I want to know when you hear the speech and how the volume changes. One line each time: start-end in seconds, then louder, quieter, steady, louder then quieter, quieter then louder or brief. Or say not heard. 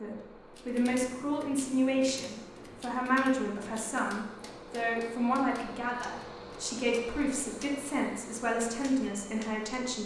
0.0-10.0 steady.